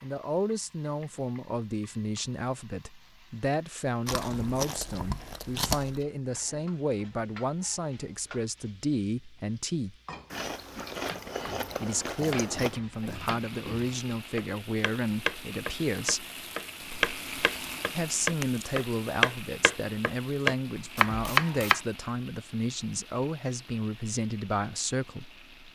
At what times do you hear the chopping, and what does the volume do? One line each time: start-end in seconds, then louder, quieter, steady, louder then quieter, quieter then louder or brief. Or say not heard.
11.1-21.8 louder.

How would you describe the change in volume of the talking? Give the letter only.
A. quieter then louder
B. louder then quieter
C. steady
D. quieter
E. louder
C.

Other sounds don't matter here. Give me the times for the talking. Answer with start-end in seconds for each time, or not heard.
0.0-9.9, 11.8-16.2, 17.9-25.7.